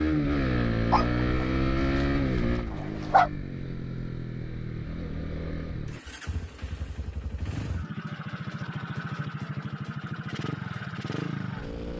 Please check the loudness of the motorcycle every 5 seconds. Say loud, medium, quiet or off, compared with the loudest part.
loud, medium, medium.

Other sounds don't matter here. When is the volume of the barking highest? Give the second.
3 s.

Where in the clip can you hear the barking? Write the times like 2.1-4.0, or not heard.
0.9-3.3.